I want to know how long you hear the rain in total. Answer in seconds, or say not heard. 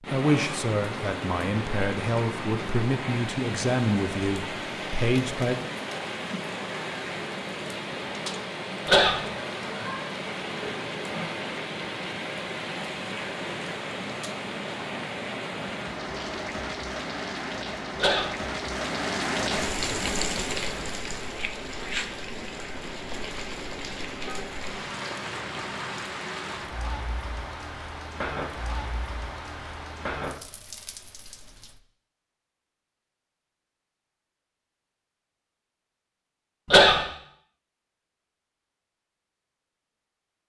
32 s.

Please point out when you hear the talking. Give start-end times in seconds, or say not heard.
0.1-5.5.